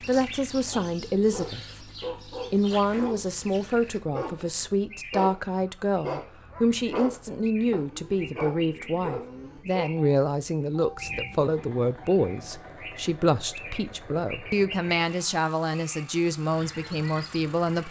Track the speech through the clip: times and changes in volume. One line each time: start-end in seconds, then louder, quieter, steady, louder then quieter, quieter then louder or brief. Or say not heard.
0.1-1.6 brief
2.5-17.8 steady.